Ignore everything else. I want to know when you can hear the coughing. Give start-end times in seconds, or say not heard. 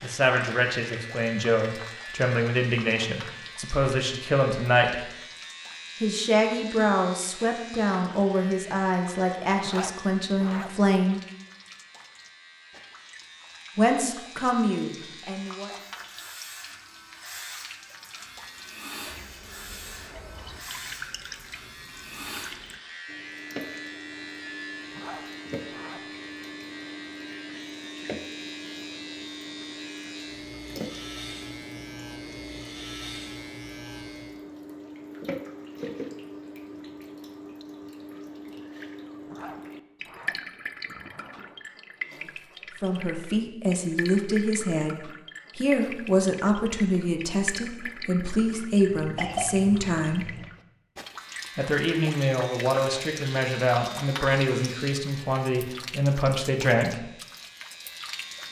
48.9-50.5.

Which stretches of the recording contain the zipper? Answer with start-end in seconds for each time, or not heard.
9.6-10.7, 24.9-26.0, 39.2-41.6.